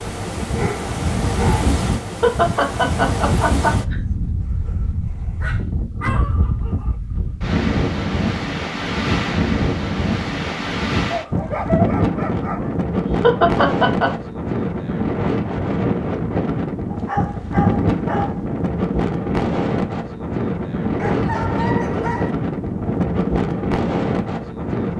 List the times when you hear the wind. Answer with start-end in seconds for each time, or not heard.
0.0-24.9.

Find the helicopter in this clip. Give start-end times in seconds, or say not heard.
not heard.